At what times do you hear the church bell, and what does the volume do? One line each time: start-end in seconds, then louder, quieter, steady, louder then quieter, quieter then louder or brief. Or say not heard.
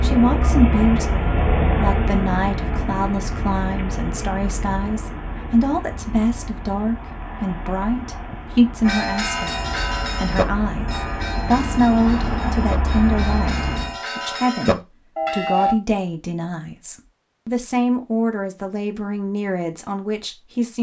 8.8-15.8 quieter then louder.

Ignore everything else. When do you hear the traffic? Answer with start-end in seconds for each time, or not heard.
0.0-14.0.